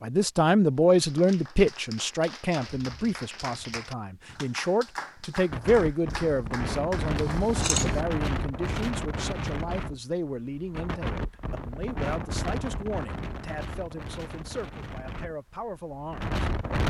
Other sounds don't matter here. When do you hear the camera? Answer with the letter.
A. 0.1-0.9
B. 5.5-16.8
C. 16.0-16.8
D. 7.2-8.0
D.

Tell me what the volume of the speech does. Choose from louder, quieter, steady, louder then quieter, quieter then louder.
quieter.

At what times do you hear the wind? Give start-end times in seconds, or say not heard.
5.5-16.8.